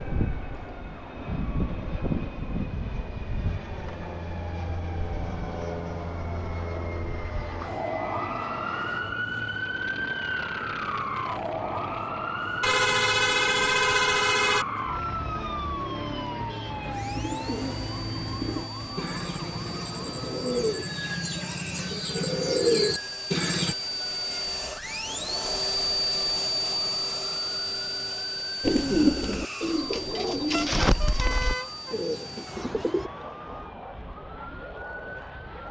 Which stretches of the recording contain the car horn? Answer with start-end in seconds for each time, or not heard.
12.6-14.7, 30.5-31.9.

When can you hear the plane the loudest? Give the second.
26 s.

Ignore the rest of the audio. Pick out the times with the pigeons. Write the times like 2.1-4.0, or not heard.
16.6-23.8, 28.6-33.1.